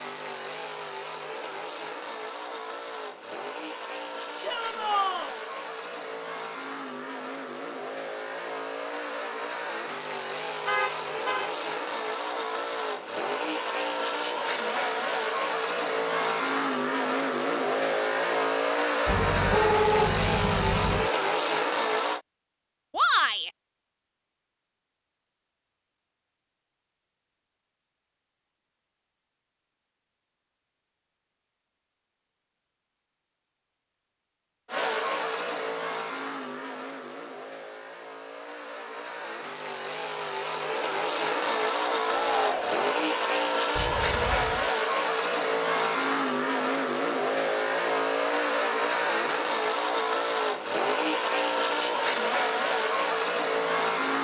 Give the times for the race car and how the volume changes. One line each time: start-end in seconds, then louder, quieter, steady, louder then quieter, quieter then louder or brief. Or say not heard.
0.0-22.2 louder
34.6-54.1 louder.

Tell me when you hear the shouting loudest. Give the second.
23 s.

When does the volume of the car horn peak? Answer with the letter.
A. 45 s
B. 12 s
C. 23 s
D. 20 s
D.